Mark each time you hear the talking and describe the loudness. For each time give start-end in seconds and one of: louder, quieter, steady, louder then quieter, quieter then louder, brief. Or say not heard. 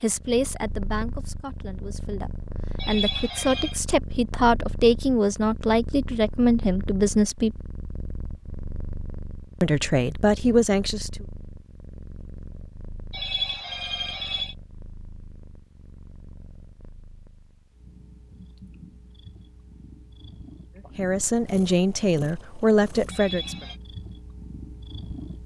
0.0-7.6 louder
9.6-11.2 brief
20.9-23.6 brief.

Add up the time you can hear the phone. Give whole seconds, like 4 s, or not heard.
3 s.